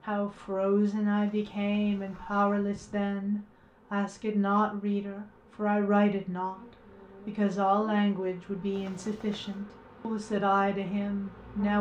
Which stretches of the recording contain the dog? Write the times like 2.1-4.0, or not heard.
not heard.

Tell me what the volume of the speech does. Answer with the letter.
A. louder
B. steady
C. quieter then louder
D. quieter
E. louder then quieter
B.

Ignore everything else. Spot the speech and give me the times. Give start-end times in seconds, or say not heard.
0.1-11.7.